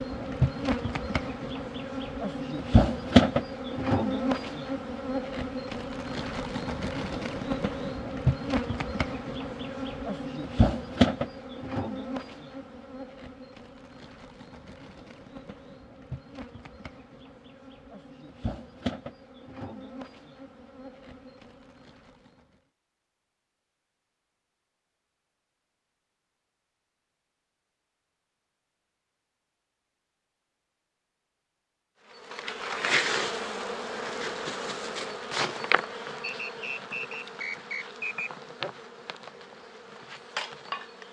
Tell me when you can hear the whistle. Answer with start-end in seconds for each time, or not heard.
36.2-38.3.